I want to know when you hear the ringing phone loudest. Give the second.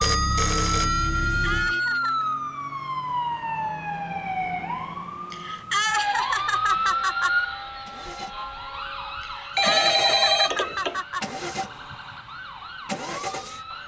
10 s.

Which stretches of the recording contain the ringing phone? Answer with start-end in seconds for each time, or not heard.
0.0-1.8, 9.6-11.0.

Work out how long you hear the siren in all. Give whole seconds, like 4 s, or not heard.
14 s.